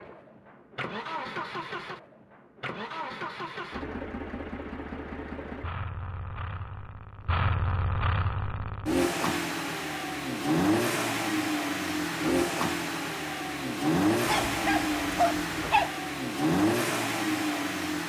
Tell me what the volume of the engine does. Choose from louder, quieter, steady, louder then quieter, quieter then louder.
louder.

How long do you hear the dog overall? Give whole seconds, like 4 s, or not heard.
2 s.